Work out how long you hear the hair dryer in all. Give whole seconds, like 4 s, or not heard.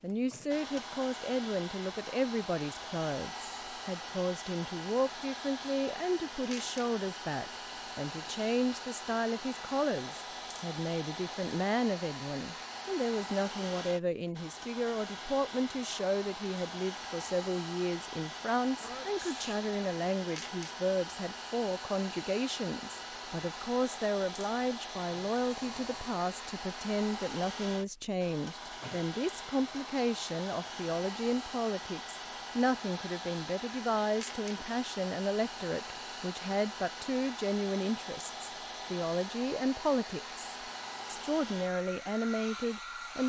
43 s.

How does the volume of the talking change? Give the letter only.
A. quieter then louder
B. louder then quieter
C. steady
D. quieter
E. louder
C.